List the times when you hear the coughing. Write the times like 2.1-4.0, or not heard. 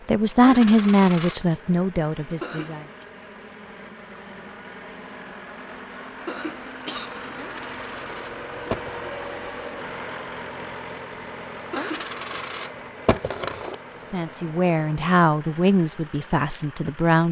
2.4-3.0, 6.2-7.5, 11.7-12.2.